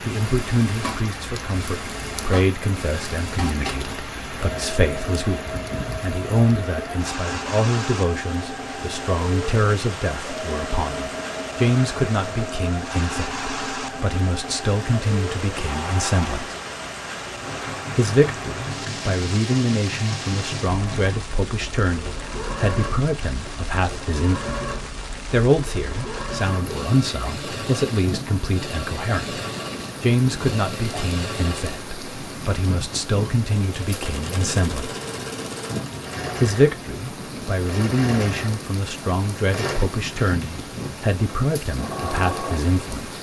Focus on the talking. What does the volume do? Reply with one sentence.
The volume of the talking stays about the same.